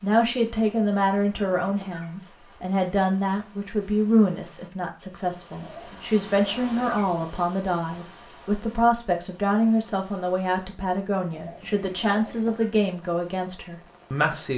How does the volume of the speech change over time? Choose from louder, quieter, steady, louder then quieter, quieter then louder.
steady.